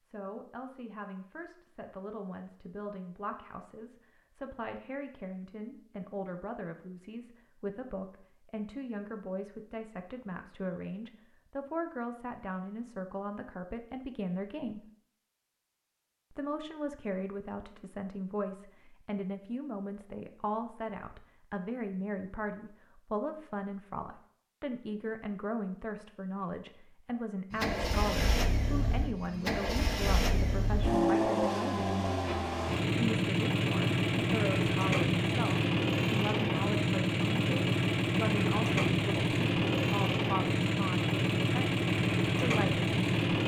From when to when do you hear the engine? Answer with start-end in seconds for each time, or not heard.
27.5-43.4.